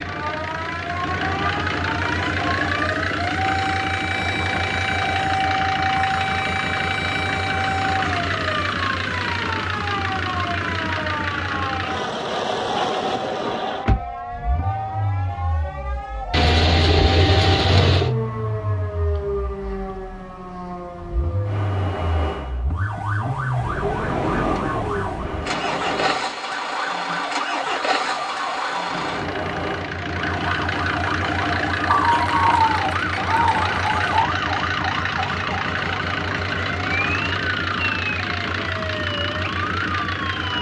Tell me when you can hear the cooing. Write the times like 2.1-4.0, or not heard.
16.3-18.1, 31.9-34.3.